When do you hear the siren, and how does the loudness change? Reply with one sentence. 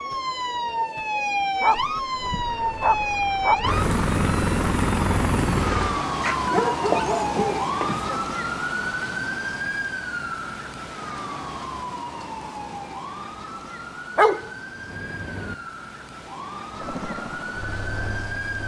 You can hear the siren from 0.0 to 18.6 s, getting quieter.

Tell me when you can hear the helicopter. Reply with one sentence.
The helicopter can be heard from 2.2 to 6.0 s and from 16.7 to 18.6 s.